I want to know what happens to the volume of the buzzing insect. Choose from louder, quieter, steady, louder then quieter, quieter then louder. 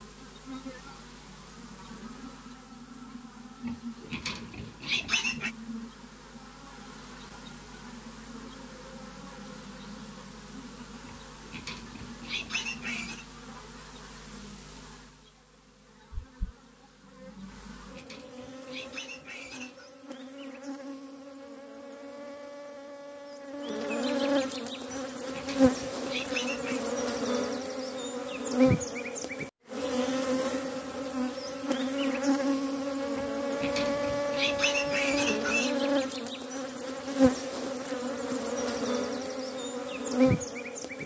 louder.